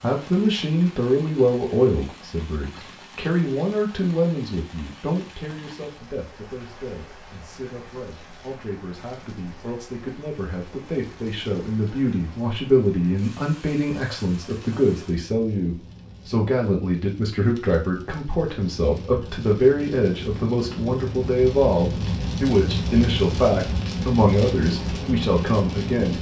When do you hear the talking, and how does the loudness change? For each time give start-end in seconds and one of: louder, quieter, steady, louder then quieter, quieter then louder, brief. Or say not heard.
0.0-26.1 quieter then louder.